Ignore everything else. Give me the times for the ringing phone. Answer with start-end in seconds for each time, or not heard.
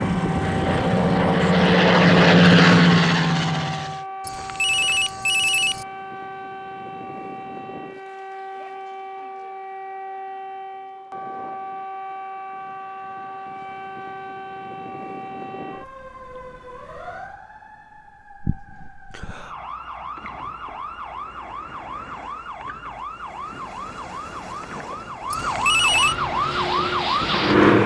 4.2-5.8, 25.3-26.1.